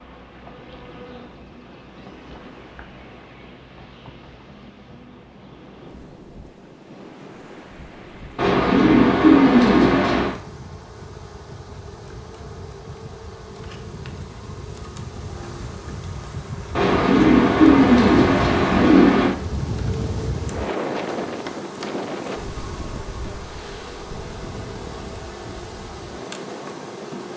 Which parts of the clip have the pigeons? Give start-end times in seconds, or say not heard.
8.3-10.3, 16.8-19.4.